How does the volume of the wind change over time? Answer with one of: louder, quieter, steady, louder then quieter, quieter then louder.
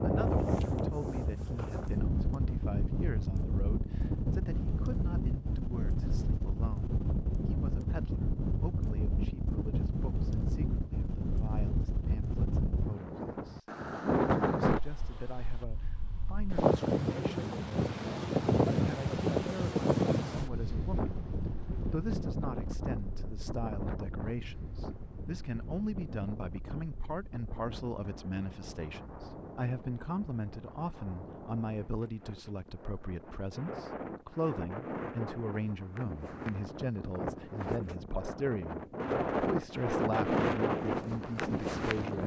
quieter then louder.